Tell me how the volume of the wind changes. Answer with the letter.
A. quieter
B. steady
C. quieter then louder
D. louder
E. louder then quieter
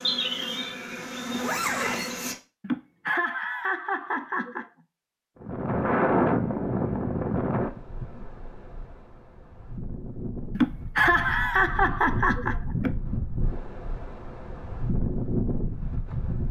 C.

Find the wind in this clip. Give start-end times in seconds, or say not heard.
5.4-16.4.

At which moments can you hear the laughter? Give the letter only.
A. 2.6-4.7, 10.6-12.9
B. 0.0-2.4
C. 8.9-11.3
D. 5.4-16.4
A.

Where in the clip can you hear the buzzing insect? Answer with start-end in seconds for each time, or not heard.
0.0-2.4.